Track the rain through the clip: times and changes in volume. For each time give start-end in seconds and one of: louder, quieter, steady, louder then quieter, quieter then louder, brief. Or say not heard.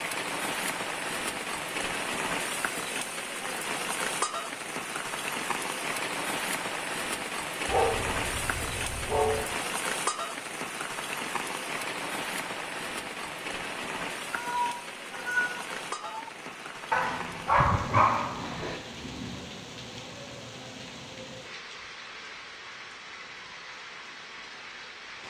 0.0-25.2 quieter.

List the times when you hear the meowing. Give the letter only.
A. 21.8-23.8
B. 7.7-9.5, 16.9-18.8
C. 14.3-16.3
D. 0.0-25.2
C.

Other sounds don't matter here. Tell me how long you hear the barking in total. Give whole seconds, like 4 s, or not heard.
4 s.